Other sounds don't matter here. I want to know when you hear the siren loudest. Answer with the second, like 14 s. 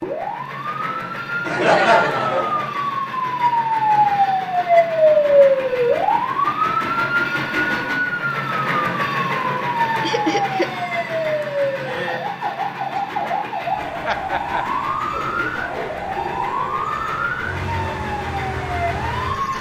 5 s.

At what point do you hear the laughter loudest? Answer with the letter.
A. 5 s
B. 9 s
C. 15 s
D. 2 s
D.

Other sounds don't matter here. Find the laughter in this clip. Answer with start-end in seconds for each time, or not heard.
1.4-2.7, 10.0-10.7, 14.1-14.7.